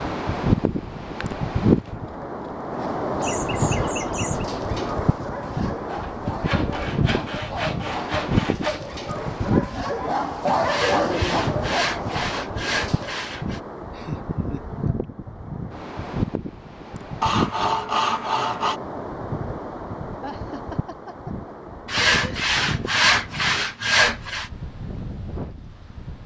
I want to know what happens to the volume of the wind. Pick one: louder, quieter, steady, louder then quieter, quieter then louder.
quieter.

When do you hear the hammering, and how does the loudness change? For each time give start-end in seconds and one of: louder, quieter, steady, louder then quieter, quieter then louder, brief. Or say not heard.
not heard.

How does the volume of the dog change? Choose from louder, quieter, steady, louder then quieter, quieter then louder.
louder.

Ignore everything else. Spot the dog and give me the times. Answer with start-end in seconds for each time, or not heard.
2.7-13.2.